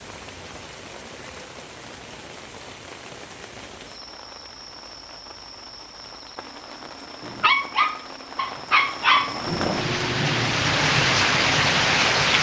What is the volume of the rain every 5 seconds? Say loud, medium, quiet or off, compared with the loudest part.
quiet, quiet, loud.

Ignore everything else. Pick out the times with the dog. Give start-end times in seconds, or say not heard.
7.2-10.6.